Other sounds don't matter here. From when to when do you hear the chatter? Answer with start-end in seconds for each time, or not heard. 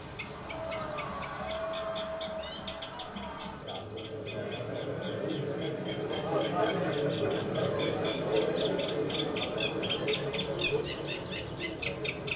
0.1-12.3.